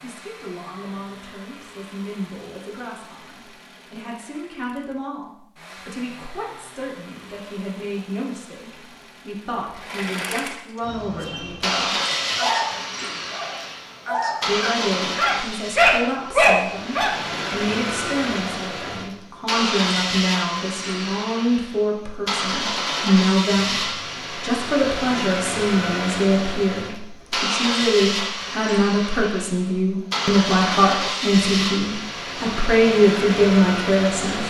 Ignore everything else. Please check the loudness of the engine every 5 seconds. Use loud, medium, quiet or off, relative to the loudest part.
quiet, quiet, loud, loud, loud, loud, loud.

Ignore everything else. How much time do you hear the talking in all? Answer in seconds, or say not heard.
32 s.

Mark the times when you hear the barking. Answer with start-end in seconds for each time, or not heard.
10.8-17.4.